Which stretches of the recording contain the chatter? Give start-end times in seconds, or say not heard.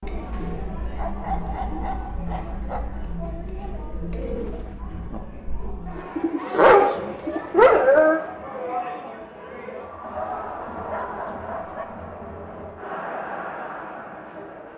0.0-14.7.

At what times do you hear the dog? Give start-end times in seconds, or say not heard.
0.9-2.9, 6.5-8.2, 10.0-11.8.